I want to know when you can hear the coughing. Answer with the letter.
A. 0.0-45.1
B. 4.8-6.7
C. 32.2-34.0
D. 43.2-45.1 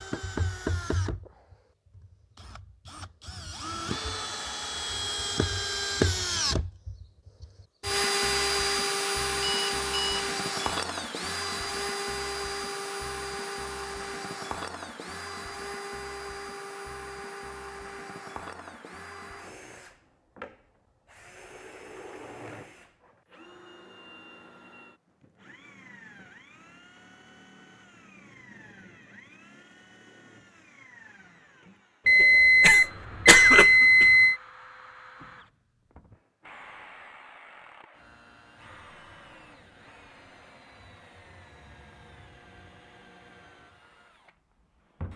C.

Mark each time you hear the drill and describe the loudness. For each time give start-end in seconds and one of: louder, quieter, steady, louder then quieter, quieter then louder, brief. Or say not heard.
0.0-45.1 quieter.